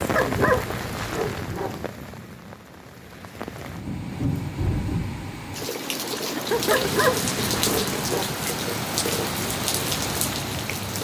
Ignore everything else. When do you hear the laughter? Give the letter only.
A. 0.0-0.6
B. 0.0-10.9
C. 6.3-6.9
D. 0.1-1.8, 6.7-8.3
C.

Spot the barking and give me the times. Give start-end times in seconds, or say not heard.
0.1-1.8, 6.7-8.3.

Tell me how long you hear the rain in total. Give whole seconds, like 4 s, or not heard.
11 s.